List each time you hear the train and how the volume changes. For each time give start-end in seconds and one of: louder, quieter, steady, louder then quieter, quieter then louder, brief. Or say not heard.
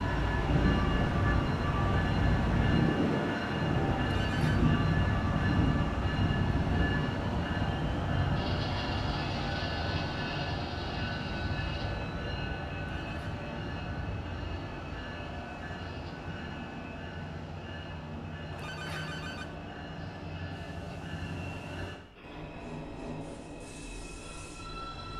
0.0-25.1 quieter.